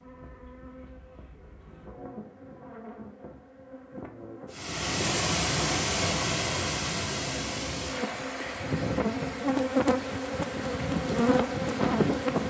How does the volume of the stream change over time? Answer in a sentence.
The volume of the stream goes down.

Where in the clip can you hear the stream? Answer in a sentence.
The stream can be heard from 4.5 to 12.4 s.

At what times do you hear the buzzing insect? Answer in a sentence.
The buzzing insect can be heard from 0.0 to 4.5 s and from 7.4 to 12.4 s.